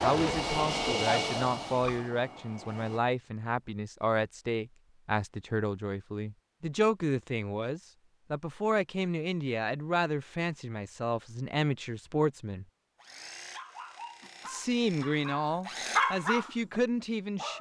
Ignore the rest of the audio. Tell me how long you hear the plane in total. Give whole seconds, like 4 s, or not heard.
3 s.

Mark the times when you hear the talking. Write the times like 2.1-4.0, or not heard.
0.0-12.7, 14.4-17.5.